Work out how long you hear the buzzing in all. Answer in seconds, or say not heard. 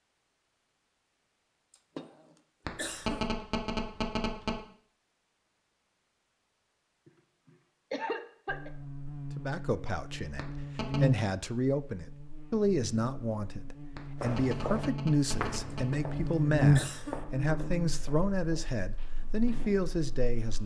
12 s.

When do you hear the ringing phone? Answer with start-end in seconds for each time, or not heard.
2.6-4.6, 10.3-11.1, 13.9-15.9.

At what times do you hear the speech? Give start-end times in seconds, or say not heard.
9.3-20.6.